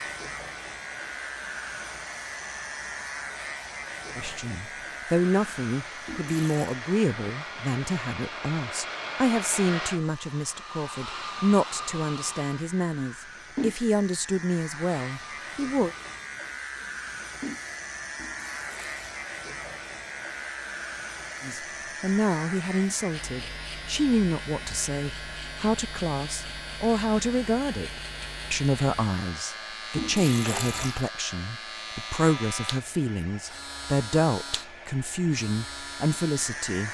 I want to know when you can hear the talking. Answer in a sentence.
The talking can be heard from 4.2 to 15.9 s and from 21.4 to 36.8 s.